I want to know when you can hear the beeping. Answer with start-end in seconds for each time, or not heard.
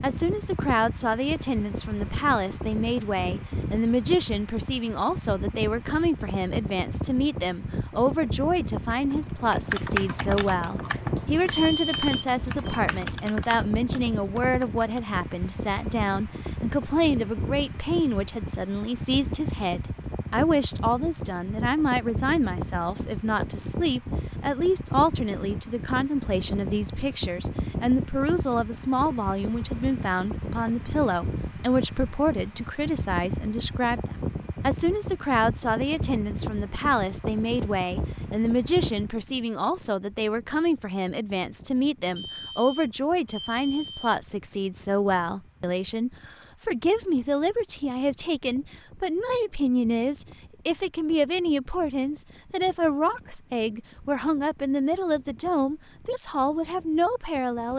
11.5-12.8, 42.1-44.1.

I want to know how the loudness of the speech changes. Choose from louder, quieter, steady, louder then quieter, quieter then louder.
steady.